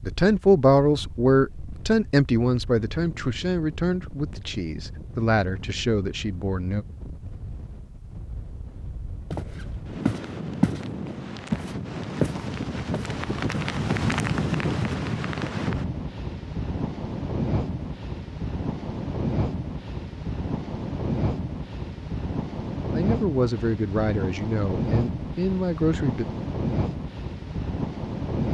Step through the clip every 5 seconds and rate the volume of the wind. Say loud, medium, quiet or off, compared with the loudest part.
quiet, quiet, loud, loud, loud, loud.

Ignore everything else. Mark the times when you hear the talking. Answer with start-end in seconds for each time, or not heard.
0.0-6.8, 22.9-26.2.